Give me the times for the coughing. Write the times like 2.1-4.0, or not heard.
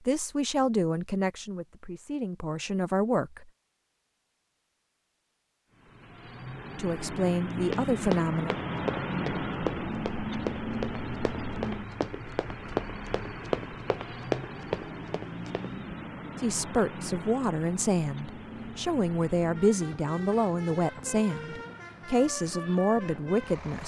not heard.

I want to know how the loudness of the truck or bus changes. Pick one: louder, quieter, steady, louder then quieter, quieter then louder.
quieter.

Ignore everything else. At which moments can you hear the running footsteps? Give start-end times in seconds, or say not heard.
7.7-15.7.